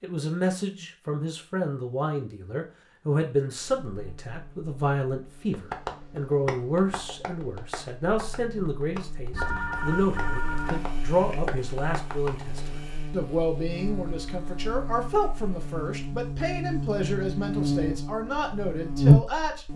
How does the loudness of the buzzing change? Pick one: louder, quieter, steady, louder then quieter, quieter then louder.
louder.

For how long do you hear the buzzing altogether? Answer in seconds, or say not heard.
16 s.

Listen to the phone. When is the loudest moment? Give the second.
10 s.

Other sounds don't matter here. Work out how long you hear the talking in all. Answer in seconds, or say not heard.
20 s.